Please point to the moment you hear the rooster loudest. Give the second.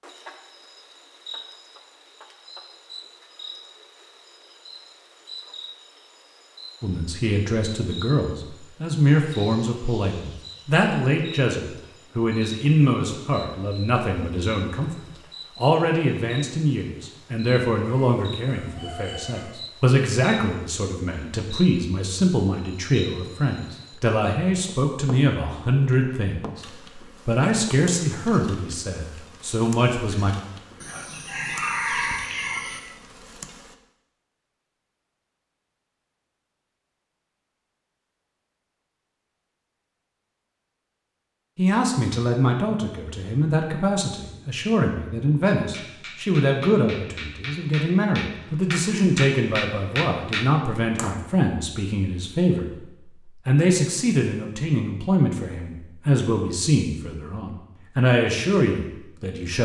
32 s.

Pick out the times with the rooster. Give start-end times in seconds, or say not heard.
17.9-19.6, 30.8-32.8.